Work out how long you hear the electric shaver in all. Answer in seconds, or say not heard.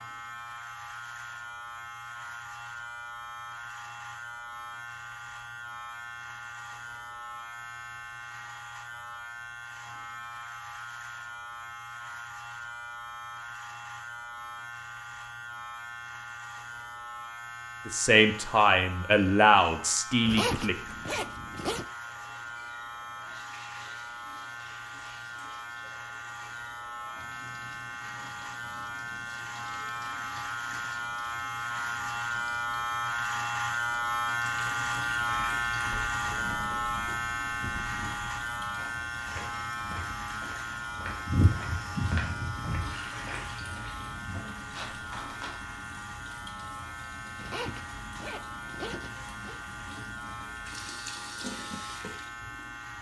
53 s.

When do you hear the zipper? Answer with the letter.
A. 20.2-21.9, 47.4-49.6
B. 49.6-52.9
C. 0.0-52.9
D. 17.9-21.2
A.